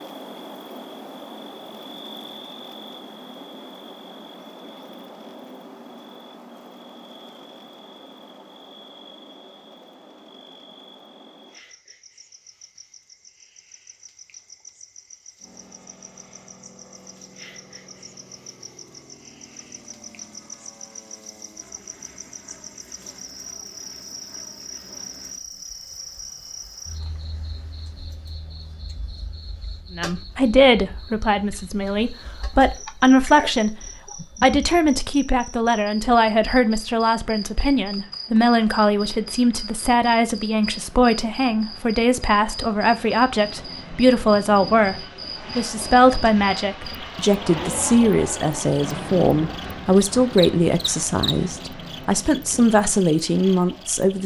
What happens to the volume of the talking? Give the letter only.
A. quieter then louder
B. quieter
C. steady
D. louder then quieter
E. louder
C.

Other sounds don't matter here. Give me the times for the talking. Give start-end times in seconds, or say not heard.
29.9-33.8, 34.4-54.2.